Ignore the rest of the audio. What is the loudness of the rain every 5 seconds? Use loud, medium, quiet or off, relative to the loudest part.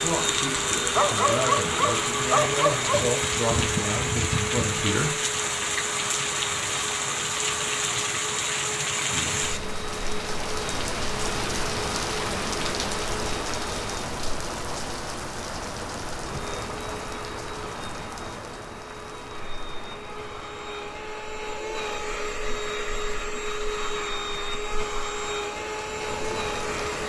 loud, loud, loud, medium, quiet, medium.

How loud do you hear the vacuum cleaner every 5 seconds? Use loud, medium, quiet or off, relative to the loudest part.
loud, medium, medium, medium, loud, loud.